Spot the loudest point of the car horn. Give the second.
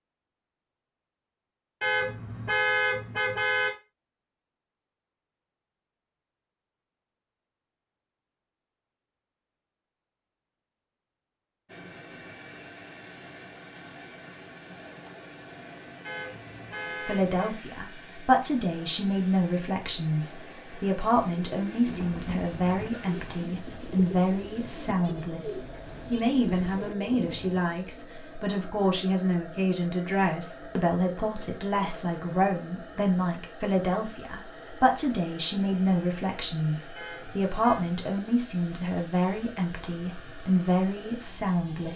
3 s.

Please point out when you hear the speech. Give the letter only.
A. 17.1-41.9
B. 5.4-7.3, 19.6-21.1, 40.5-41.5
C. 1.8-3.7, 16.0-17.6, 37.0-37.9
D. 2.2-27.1
A.